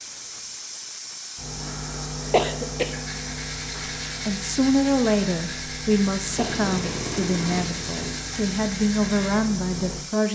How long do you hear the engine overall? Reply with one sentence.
The engine can be heard for 2 seconds in total.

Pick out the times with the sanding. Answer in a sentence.
You can hear the sanding from 1.4 to 10.0 s.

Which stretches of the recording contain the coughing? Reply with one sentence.
You can hear the coughing from 2.3 to 3.0 s and from 6.3 to 7.0 s.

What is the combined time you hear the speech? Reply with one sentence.
You can hear the speech for 6 seconds altogether.